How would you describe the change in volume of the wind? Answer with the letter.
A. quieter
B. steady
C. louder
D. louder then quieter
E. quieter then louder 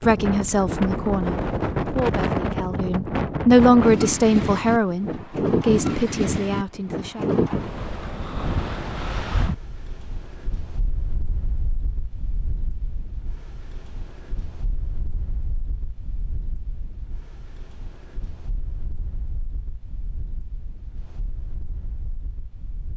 A.